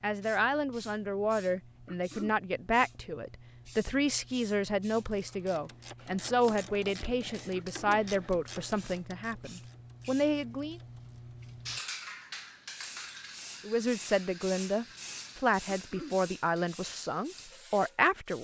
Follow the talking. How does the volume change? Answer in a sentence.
The volume of the talking stays about the same.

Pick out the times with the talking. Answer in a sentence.
The talking can be heard from 0.0 to 10.8 s and from 13.7 to 18.3 s.